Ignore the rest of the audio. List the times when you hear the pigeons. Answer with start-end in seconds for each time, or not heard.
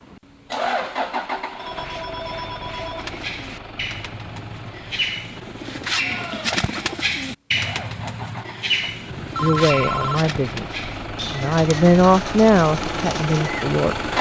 3.0-13.6.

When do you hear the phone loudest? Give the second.
10 s.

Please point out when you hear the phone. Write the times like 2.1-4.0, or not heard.
1.6-3.6, 9.1-10.2.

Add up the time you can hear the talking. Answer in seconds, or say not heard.
5 s.